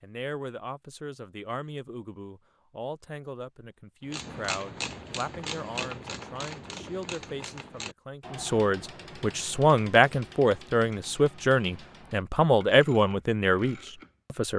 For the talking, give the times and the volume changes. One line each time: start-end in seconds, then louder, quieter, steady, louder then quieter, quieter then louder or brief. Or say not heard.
0.0-14.5 louder.